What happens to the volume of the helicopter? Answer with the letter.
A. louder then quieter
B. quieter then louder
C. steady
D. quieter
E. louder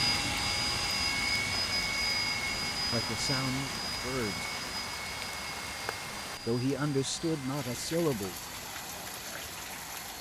D.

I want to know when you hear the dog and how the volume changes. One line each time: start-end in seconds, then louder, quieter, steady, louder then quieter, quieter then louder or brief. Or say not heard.
not heard.